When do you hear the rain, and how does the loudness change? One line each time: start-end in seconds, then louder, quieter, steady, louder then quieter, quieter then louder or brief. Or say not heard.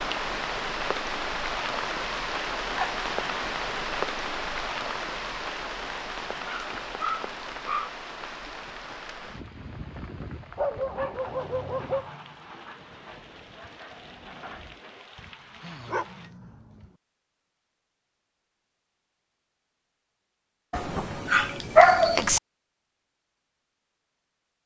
0.0-16.3 quieter.